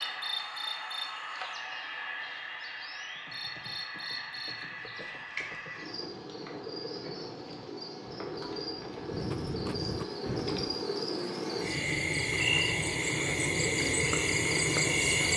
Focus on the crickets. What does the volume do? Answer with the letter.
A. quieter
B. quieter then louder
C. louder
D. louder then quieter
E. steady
C.